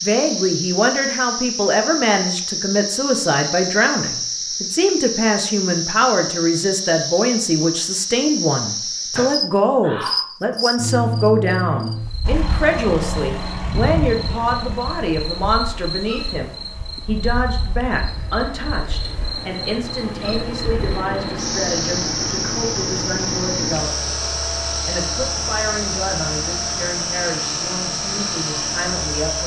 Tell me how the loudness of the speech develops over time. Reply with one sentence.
The volume of the speech goes down.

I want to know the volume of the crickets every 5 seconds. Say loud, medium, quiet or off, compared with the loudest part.
loud, loud, loud, medium, loud, loud.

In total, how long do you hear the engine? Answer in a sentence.
The engine can be heard for 17 seconds in total.